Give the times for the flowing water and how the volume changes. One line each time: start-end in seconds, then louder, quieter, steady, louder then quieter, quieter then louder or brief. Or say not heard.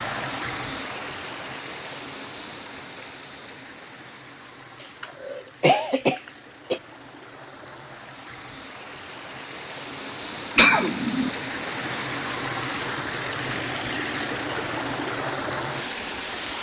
0.0-16.5 quieter then louder.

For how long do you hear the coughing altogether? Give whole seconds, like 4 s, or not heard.
3 s.